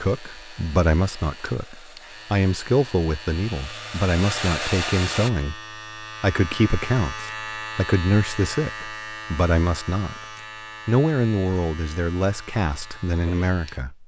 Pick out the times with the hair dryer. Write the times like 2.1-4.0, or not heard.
0.0-5.3.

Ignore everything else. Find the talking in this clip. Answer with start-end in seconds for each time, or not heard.
0.0-10.2, 10.8-14.0.